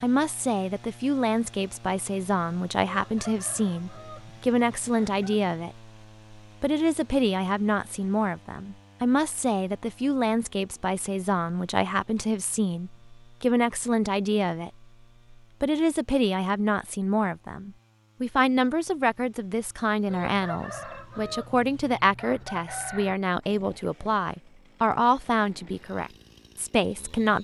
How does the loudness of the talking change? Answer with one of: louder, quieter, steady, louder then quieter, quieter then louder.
steady.